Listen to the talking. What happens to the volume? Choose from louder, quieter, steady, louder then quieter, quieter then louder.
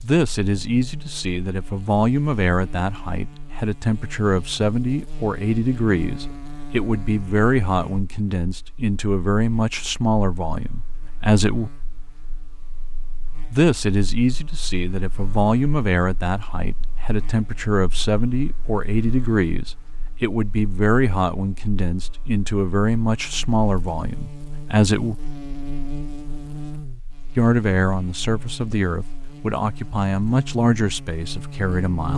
steady.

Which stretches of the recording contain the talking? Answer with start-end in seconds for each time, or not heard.
0.0-11.7, 13.5-25.1, 27.4-32.1.